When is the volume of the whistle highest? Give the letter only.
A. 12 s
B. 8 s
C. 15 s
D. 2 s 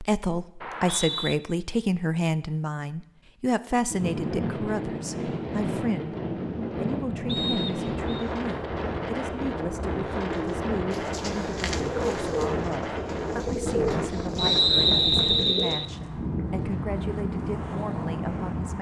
C.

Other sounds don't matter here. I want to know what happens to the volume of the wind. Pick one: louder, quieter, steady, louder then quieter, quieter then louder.
steady.